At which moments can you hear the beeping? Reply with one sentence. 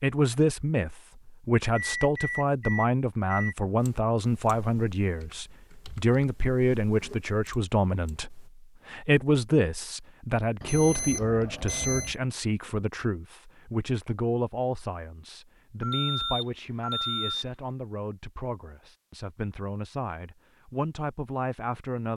You can hear the beeping from 1.8 to 3.5 s, from 10.6 to 12.2 s and from 15.8 to 17.4 s.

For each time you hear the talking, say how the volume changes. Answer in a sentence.
You can hear the talking from 0.0 to 22.1 s, getting quieter.